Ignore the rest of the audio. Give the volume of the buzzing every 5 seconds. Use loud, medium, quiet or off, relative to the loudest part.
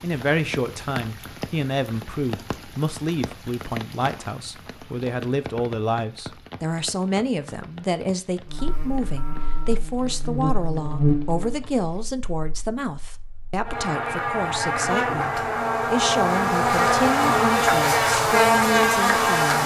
off, quiet, medium, loud.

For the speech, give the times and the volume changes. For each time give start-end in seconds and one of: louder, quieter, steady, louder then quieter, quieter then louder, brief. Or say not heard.
0.0-19.6 steady.